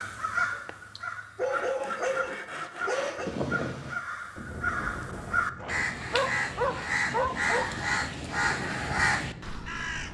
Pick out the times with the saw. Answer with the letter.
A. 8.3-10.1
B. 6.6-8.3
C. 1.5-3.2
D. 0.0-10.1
C.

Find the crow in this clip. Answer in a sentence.
The crow can be heard from 0.0 to 10.1 s.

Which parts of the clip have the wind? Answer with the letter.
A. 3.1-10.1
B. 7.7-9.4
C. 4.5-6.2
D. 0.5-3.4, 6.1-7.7
A.